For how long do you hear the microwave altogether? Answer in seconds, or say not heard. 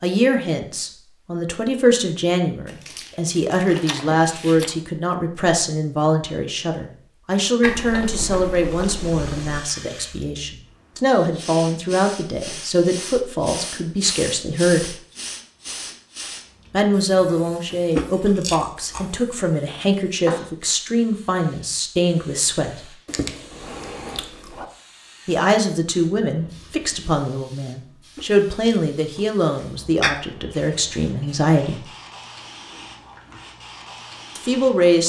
not heard.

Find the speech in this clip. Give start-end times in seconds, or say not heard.
0.0-14.9, 16.7-22.9, 25.2-31.9, 34.4-35.0.